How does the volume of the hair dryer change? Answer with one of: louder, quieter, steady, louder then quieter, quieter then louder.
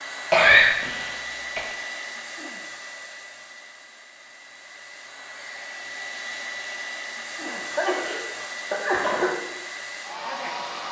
quieter then louder.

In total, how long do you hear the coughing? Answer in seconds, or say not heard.
3 s.